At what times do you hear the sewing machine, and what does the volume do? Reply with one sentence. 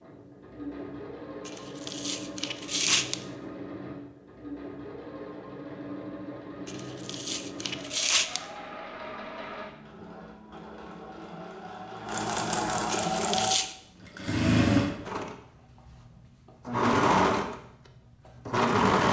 You can hear the sewing machine from 0.0 to 19.0 s, getting louder.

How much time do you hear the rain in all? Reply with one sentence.
You can't hear the rain here.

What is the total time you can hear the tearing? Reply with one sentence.
You can hear the tearing for 4 seconds altogether.